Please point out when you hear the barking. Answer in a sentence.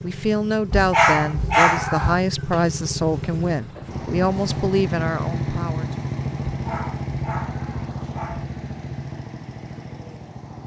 The barking can be heard from 0.7 to 2.2 s and from 6.5 to 8.4 s.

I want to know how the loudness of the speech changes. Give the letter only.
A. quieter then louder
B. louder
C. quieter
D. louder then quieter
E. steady
E.